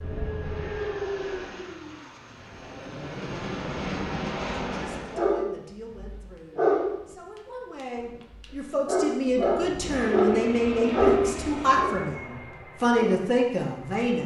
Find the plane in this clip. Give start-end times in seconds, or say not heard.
0.0-5.3, 9.4-14.2.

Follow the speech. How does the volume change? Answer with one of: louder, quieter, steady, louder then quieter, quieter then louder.
louder.